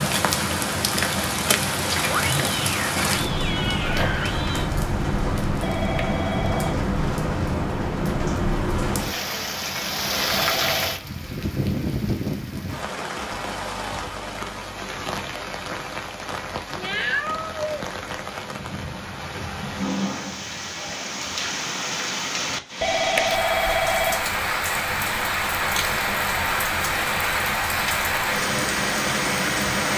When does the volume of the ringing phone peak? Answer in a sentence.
The volume of the ringing phone peaks at 23 seconds.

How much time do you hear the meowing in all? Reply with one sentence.
The meowing can be heard for 4 seconds in total.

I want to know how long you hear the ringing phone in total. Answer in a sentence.
You can hear the ringing phone for 3 seconds altogether.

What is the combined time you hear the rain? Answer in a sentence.
You can hear the rain for 30 seconds altogether.